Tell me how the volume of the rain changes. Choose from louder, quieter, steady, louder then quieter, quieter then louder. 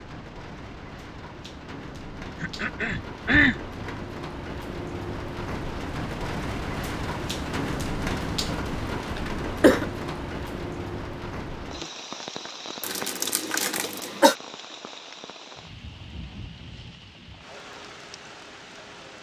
louder then quieter.